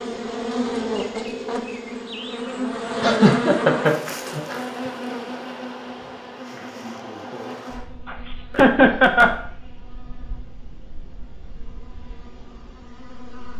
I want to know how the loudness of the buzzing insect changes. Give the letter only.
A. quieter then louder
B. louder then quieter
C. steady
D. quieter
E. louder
D.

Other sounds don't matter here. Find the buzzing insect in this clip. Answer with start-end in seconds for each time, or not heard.
0.0-13.5.